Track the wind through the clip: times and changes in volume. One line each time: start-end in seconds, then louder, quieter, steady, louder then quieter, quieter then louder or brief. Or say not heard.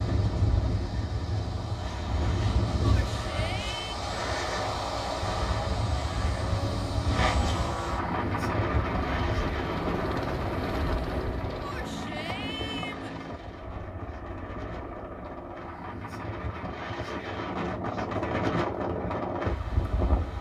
0.0-20.3 quieter then louder.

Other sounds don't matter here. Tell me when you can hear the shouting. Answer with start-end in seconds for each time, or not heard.
2.8-4.0, 11.6-13.2.